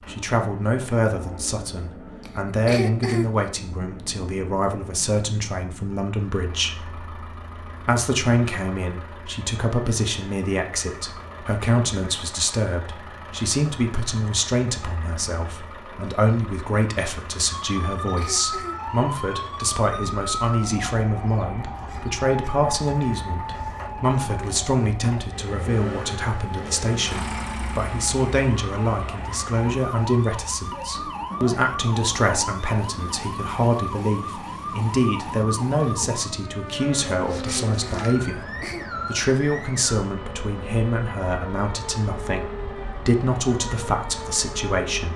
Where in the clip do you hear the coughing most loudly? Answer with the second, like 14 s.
3 s.